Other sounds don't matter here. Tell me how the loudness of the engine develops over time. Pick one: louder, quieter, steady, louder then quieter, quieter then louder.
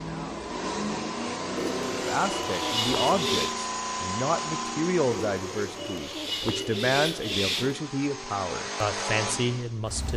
quieter then louder.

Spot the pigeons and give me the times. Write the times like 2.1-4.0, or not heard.
1.6-3.5, 5.1-7.8.